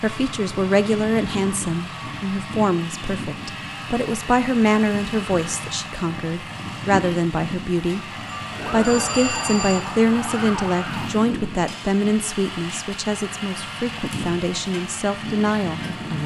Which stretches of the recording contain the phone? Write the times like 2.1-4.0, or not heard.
8.2-9.8.